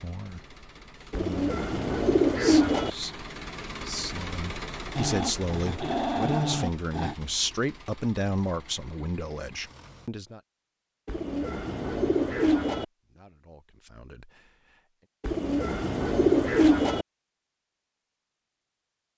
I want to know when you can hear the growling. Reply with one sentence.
You can hear the growling from 5.0 to 7.2 s.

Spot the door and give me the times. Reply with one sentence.
You can't hear the door here.